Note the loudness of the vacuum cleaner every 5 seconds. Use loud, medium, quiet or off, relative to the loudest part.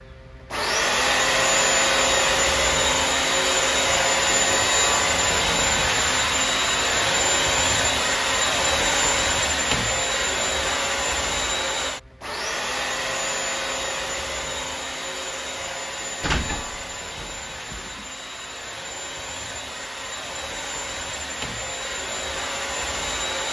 loud, loud, medium, quiet, medium.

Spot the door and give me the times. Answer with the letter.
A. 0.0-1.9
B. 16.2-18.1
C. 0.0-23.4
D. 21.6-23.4
B.